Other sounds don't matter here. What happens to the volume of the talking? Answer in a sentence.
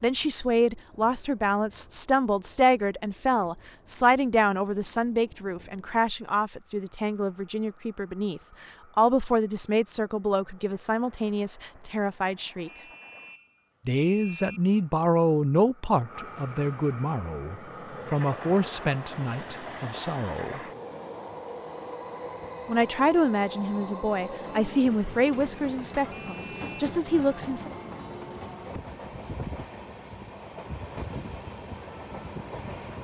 The loudness of the talking stays about the same.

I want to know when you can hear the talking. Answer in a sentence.
You can hear the talking from 0.0 to 12.7 s, from 13.8 to 20.6 s and from 22.6 to 27.7 s.